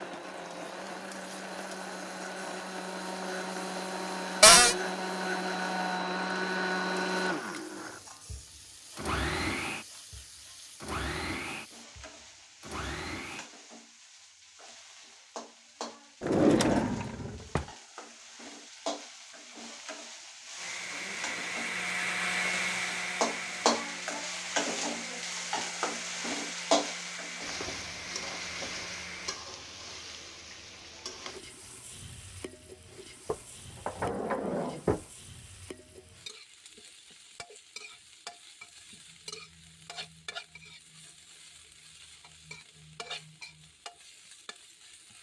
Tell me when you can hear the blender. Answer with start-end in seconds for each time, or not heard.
0.0-13.4, 20.6-29.4.